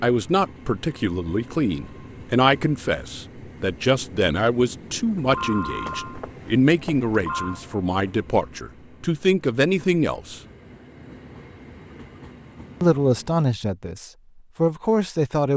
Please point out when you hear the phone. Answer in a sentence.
The phone can be heard from 5.2 to 7.6 s.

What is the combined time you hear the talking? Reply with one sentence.
The talking can be heard for 13 seconds in total.